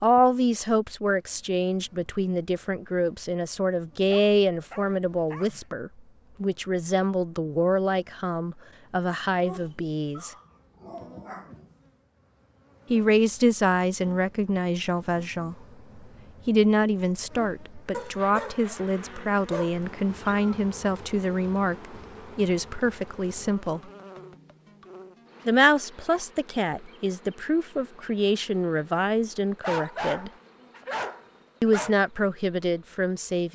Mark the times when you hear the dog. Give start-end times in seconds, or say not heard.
4.0-5.7, 9.4-11.9, 17.9-20.5, 29.6-31.9.